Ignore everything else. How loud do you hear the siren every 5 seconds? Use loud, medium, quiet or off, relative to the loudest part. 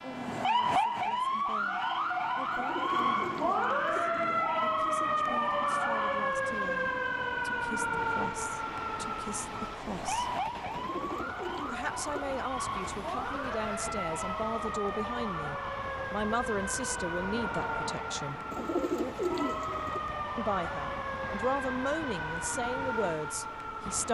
loud, loud, medium, medium, medium.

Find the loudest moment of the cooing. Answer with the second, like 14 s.
19 s.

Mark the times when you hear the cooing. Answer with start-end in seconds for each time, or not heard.
2.5-4.3, 10.7-12.4, 18.5-20.0.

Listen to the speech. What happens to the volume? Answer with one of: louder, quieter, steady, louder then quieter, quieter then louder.
louder.